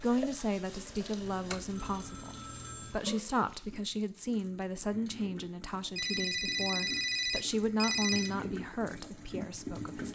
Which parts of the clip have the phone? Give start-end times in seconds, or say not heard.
1.2-3.0, 6.0-8.3.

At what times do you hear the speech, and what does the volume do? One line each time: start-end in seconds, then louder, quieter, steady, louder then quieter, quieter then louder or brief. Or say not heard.
0.0-10.1 steady.